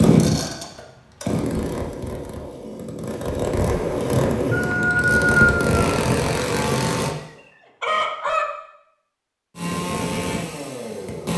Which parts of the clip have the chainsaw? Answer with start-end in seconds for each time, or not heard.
0.0-7.2, 9.6-11.3.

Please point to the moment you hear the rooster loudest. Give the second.
5 s.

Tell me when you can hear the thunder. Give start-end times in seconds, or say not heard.
3.6-5.7.